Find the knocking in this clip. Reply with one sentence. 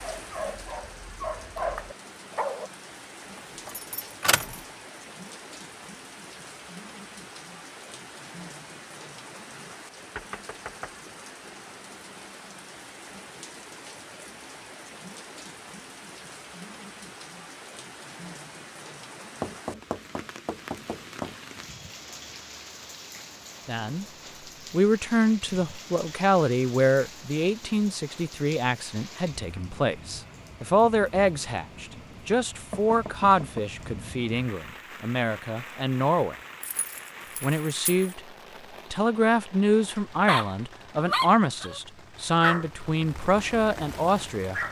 You can hear the knocking from 10.2 to 10.9 s, from 19.4 to 21.4 s and from 32.7 to 33.6 s.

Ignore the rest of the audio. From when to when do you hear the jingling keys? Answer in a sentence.
You can hear the jingling keys from 3.6 to 4.6 s and from 36.6 to 38.1 s.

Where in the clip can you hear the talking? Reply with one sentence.
You can hear the talking from 23.6 to 24.1 s, from 24.7 to 36.4 s, from 37.4 to 38.2 s and from 38.9 to 44.6 s.